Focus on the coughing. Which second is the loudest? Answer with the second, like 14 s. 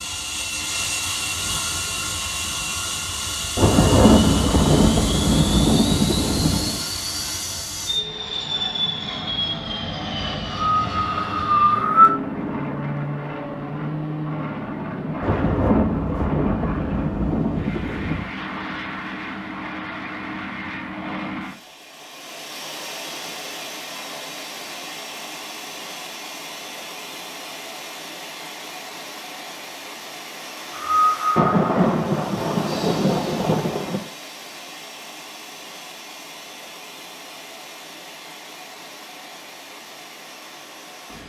12 s.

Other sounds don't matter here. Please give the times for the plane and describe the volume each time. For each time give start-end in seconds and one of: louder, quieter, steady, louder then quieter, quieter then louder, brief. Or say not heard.
0.0-41.2 quieter.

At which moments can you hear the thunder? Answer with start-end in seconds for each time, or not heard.
3.5-6.8, 15.2-18.3, 31.4-34.0.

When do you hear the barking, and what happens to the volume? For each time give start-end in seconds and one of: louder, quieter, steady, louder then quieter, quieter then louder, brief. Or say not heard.
not heard.